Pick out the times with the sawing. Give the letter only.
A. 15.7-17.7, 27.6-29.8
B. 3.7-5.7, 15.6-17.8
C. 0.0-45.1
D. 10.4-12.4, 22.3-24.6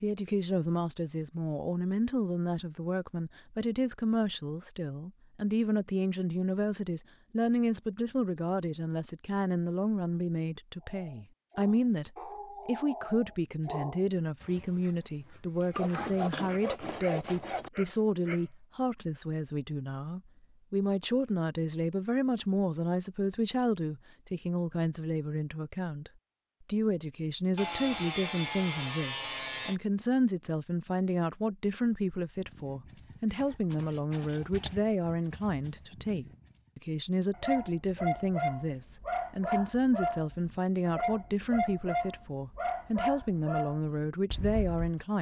A.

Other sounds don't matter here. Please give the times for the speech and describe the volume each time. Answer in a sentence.
You can hear the speech from 0.0 to 45.1 s, at a steady volume.